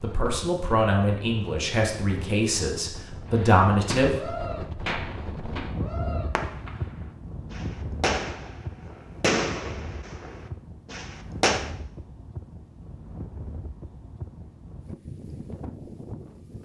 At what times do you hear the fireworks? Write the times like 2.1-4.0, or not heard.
3.3-11.7.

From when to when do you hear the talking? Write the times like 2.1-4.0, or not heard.
0.0-4.2.